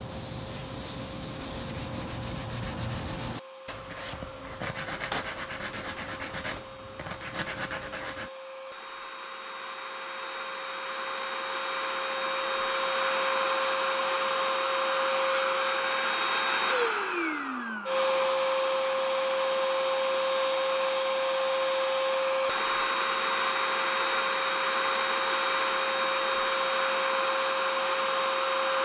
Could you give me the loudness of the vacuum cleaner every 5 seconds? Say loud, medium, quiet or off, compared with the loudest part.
quiet, quiet, loud, loud, loud, loud.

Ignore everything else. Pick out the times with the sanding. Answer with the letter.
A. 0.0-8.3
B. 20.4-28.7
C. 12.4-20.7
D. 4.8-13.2
A.